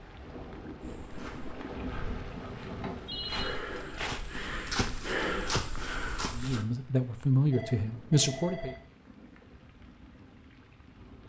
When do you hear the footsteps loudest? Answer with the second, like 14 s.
5 s.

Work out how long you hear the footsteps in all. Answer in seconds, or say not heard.
6 s.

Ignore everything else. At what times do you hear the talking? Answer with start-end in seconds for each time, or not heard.
6.3-8.8.